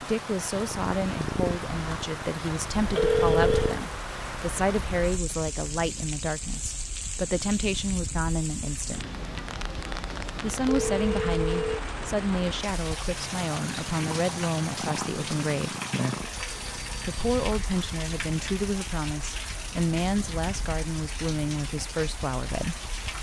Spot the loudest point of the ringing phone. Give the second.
3 s.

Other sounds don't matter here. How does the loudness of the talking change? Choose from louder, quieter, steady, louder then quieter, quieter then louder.
steady.